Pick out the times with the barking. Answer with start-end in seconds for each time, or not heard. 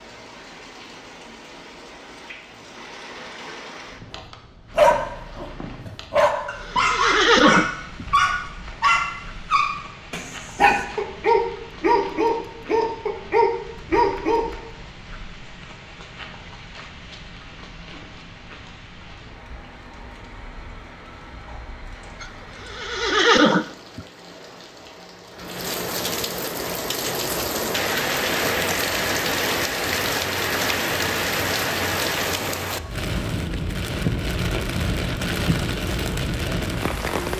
4.1-14.4.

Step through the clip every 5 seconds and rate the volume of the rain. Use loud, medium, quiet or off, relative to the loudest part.
quiet, quiet, quiet, quiet, quiet, loud, loud, loud.